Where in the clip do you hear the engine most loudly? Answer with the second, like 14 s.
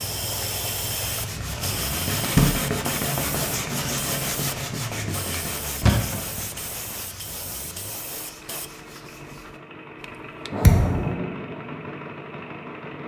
11 s.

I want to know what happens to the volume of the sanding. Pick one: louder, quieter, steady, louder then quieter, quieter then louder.
quieter.